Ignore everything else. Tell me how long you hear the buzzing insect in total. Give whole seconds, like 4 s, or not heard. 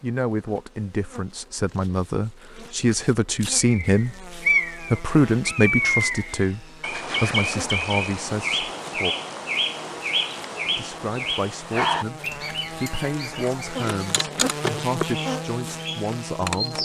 17 s.